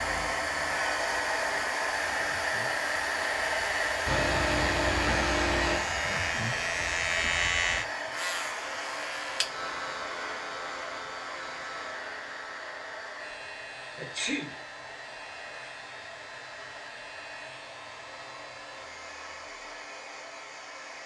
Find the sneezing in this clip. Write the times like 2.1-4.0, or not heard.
4.0-5.8, 13.9-14.6.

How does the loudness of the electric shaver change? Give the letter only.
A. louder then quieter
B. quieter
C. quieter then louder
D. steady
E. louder
A.